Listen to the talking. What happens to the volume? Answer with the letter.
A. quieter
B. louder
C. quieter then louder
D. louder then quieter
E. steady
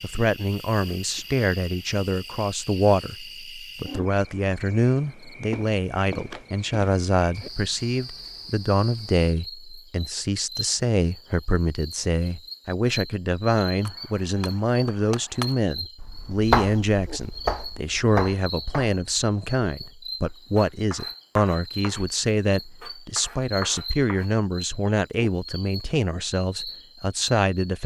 E.